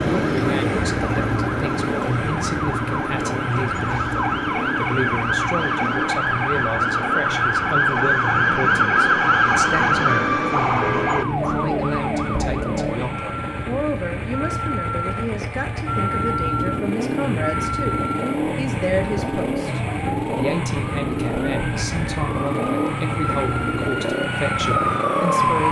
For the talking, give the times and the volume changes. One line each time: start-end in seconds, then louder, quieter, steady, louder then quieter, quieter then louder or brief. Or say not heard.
0.1-25.6 steady.